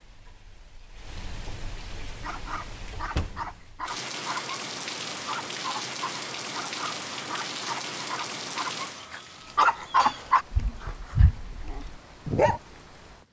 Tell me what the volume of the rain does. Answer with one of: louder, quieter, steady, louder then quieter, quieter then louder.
louder then quieter.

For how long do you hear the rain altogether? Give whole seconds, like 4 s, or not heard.
13 s.